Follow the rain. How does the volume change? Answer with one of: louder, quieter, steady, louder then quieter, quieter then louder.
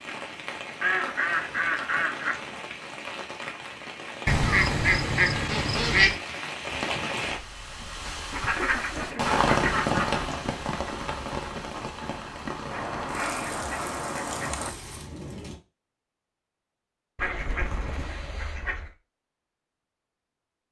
louder then quieter.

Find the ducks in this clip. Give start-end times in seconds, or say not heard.
0.8-2.5, 4.2-6.2, 8.3-10.2, 12.7-14.7, 17.1-18.9.